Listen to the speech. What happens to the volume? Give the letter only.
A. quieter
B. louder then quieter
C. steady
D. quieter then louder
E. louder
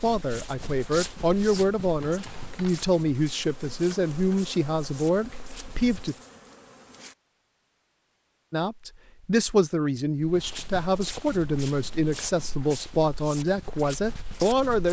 C.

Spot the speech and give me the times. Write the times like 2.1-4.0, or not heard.
0.0-6.2, 8.5-14.8.